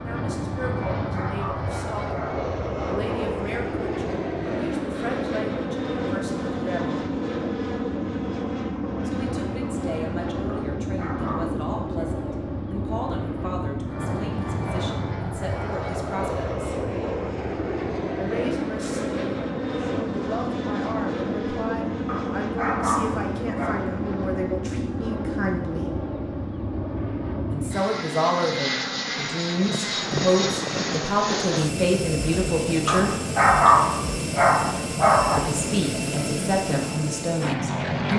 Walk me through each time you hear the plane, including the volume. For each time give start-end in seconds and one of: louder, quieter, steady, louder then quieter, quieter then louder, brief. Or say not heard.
0.0-38.1 steady.